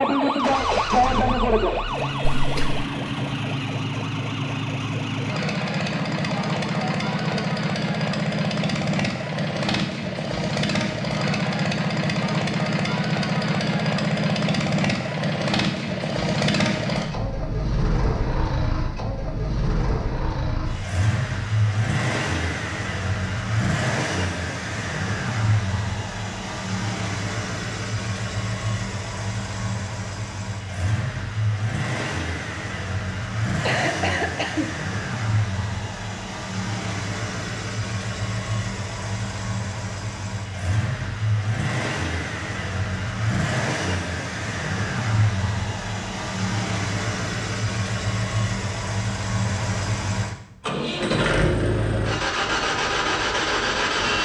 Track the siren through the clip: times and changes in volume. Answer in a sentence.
You can hear the siren from 0.0 to 7.5 s, getting quieter.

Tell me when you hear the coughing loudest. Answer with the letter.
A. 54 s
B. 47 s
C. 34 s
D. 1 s
C.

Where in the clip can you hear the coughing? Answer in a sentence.
You can hear the coughing from 2.2 to 2.9 s and from 33.5 to 34.7 s.